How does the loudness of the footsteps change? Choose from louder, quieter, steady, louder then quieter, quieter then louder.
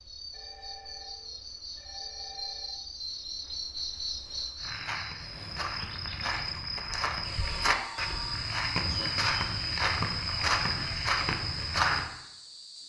louder.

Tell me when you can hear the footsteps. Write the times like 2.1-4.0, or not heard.
4.5-12.1.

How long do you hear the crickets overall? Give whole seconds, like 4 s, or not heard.
13 s.